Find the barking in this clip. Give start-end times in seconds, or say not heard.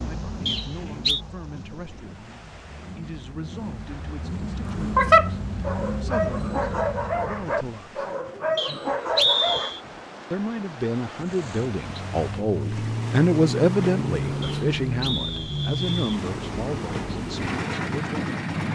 4.7-9.7.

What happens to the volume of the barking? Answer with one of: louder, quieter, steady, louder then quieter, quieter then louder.
quieter then louder.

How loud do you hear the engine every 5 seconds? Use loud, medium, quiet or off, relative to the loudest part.
medium, loud, loud, loud.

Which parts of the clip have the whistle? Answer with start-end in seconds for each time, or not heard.
0.5-1.2, 8.6-9.8, 14.4-16.2.